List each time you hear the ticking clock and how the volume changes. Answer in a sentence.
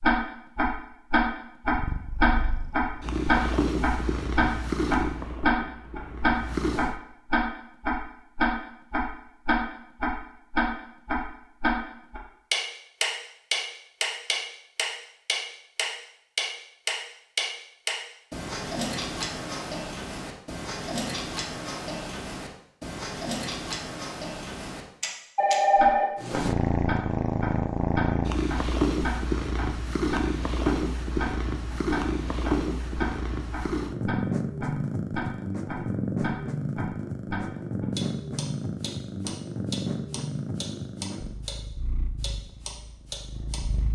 The ticking clock can be heard from 0.0 to 41.5 s, getting quieter; and briefly from 42.2 to 43.6 s.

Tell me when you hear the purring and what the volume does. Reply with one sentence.
You can hear the purring from 1.7 to 7.0 s, getting louder then quieter; and from 26.2 to 43.8 s, getting quieter.